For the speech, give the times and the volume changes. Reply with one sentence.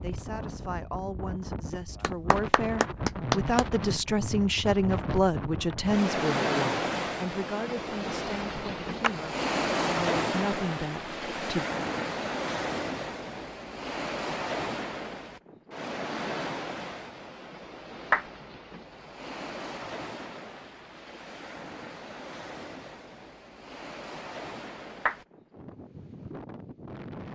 You can hear the speech from 0.0 to 11.7 s, getting louder then quieter.